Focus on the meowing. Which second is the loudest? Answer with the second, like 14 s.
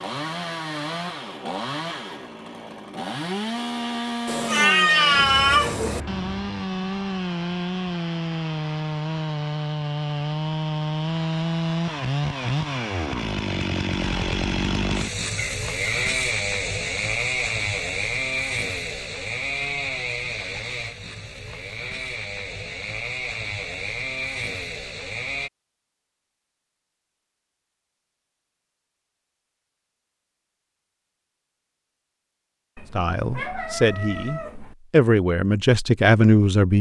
5 s.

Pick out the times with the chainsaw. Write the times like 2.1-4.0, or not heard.
0.0-25.5.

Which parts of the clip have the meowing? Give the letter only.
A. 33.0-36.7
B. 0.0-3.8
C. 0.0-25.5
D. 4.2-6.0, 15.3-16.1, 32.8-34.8
D.